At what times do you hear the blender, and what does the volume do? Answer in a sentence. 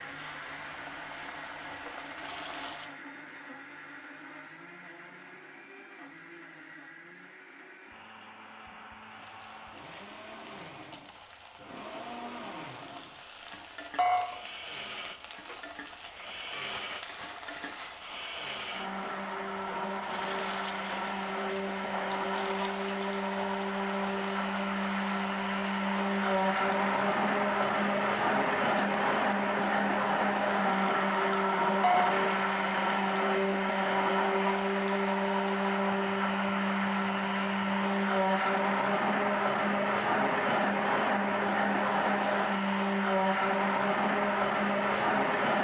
The blender can be heard from 0.0 to 45.5 s, getting louder.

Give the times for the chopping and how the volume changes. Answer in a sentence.
The chopping can't be heard in this clip.